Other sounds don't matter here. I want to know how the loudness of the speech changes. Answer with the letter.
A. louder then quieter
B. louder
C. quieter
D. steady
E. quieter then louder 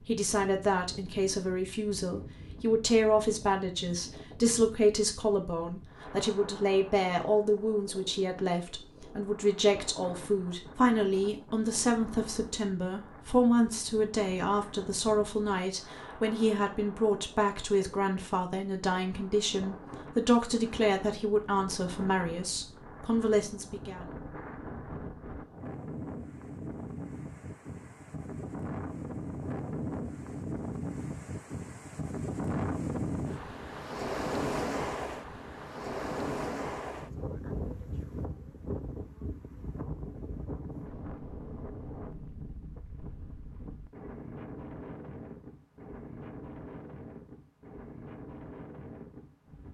D.